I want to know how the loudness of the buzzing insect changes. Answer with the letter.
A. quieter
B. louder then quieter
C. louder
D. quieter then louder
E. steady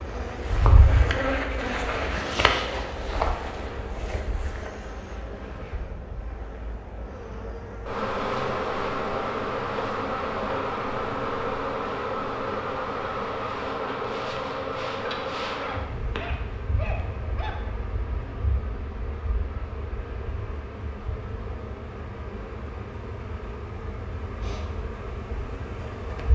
A.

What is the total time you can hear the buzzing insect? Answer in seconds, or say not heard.
26 s.